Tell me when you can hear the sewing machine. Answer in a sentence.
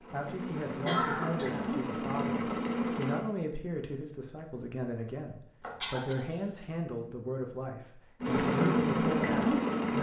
The sewing machine can be heard from 0.0 to 3.2 s and from 8.2 to 9.9 s.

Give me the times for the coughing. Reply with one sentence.
You can hear the coughing from 0.8 to 1.6 s and from 5.6 to 6.7 s.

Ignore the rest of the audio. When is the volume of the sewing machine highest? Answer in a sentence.
The volume of the sewing machine peaks at 9 seconds.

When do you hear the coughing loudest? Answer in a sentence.
The loudest moment of the coughing is at 1 second.